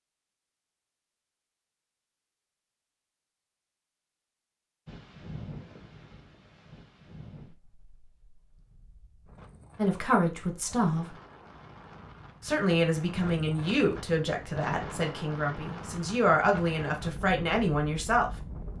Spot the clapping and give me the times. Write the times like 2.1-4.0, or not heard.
not heard.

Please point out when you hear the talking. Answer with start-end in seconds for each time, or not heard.
9.8-11.1, 12.4-18.3.